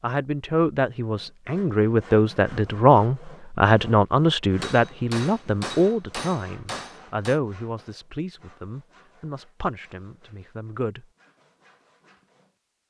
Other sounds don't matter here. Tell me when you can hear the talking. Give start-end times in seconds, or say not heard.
0.0-11.1.